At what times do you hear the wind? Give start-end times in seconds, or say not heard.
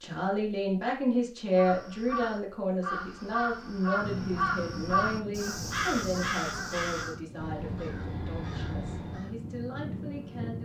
4.0-10.5.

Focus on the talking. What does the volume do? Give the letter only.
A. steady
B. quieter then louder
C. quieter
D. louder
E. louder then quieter
C.